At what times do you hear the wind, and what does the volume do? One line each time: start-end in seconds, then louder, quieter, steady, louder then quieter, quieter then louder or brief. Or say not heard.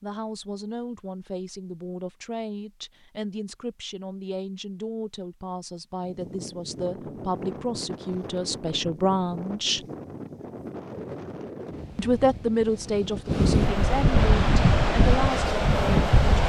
6.0-16.4 louder.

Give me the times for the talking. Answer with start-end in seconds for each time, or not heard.
0.0-9.8, 11.9-16.4.